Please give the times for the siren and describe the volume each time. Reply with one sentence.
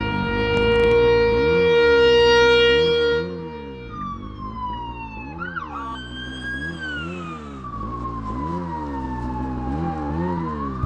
The siren can be heard from 0.0 to 10.8 s, getting quieter.